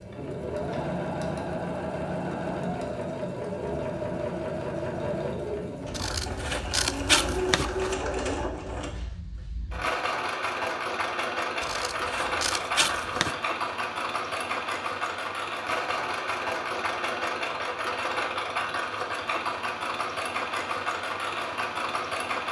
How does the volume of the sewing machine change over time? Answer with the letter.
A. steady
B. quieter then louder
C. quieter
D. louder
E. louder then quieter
A.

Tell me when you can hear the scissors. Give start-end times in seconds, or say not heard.
5.9-8.0, 11.6-13.3.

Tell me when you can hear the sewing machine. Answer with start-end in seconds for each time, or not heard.
0.0-22.4.